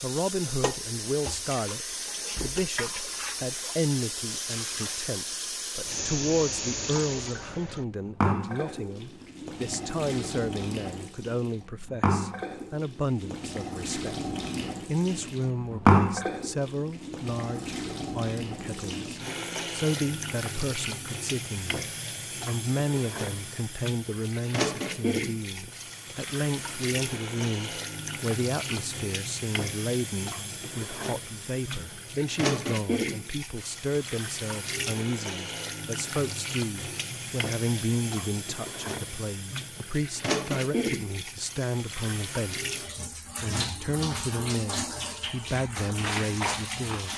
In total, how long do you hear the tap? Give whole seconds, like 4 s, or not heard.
47 s.